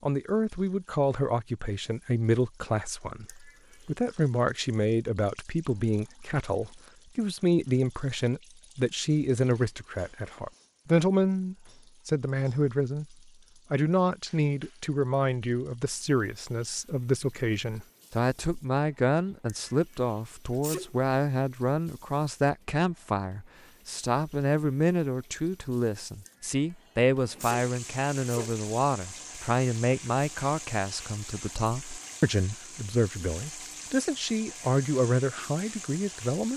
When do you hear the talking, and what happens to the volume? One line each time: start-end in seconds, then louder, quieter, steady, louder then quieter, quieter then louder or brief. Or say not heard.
0.0-36.5 steady.